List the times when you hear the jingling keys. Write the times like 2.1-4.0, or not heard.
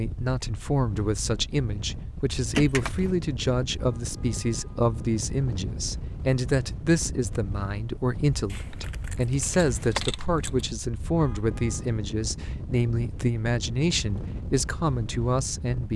2.5-3.1, 8.5-10.7.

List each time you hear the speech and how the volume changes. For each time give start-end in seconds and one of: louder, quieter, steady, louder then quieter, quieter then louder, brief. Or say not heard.
0.0-15.9 steady.